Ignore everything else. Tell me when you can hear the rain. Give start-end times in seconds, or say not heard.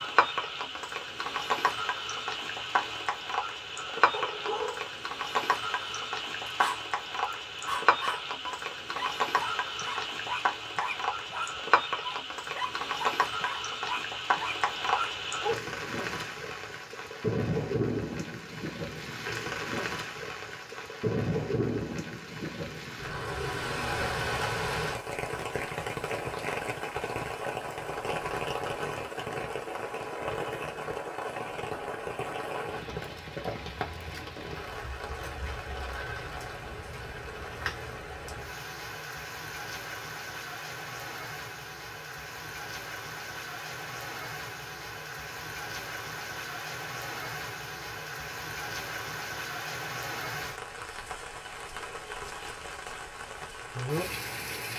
0.0-54.7.